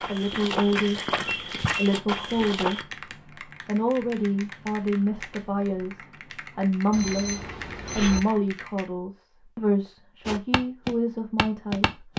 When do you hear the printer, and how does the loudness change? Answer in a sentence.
You can't hear the printer here.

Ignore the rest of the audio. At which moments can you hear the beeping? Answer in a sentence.
You can hear the beeping from 1.2 to 1.6 s and from 6.9 to 8.2 s.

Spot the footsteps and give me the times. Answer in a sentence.
The footsteps can be heard from 0.0 to 2.9 s and from 10.2 to 12.1 s.